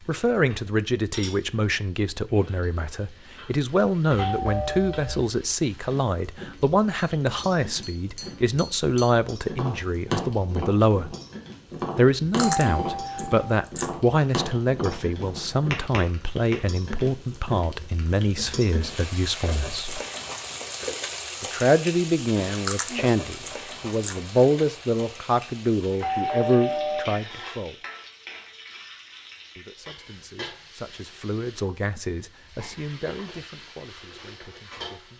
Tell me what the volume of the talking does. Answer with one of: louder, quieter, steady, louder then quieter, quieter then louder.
quieter.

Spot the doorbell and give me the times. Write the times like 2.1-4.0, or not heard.
4.1-5.2, 12.3-13.3, 26.0-27.1.